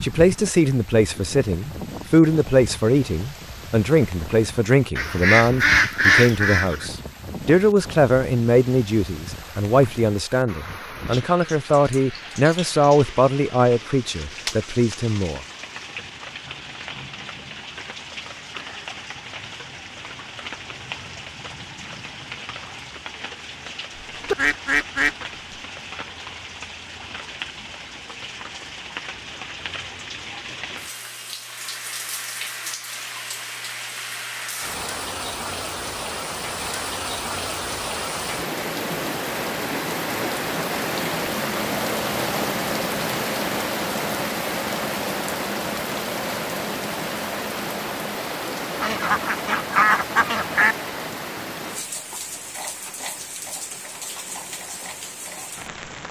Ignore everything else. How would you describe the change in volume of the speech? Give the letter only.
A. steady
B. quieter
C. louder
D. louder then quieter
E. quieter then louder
A.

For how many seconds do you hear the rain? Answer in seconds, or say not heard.
56 s.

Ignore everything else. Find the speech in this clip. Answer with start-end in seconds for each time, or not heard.
0.0-15.4.